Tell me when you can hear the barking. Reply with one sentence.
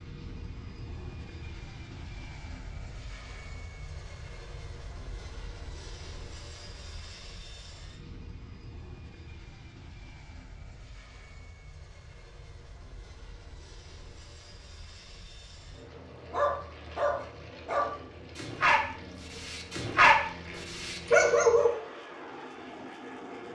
The barking can be heard from 16.3 to 21.7 s.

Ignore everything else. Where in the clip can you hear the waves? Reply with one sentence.
The waves can't be heard in this clip.